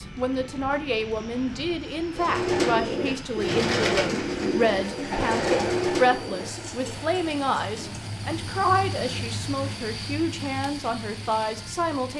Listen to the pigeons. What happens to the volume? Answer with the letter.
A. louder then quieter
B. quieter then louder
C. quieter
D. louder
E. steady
C.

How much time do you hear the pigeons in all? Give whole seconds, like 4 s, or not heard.
6 s.